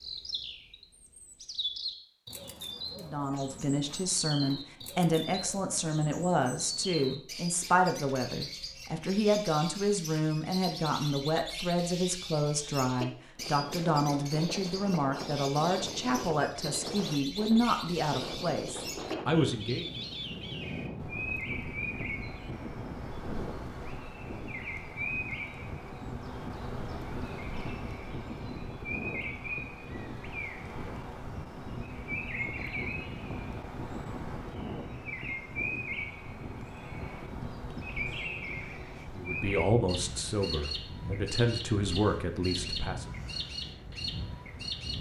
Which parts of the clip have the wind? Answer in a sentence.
The wind can be heard from 13.3 to 44.9 s.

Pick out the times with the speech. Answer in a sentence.
The speech can be heard from 3.0 to 19.9 s and from 39.1 to 43.1 s.